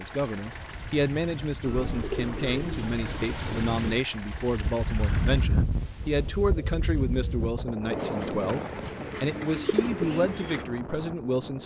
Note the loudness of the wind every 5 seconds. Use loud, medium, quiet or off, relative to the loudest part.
medium, loud, medium.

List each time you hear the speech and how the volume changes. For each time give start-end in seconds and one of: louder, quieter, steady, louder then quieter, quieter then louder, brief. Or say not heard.
0.0-11.6 steady.